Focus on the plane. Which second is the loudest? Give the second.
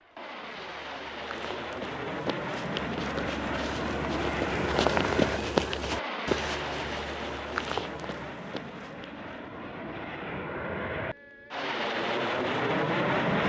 13 s.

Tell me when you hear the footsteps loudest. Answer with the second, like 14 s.
5 s.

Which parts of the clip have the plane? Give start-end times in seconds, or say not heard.
0.0-13.4.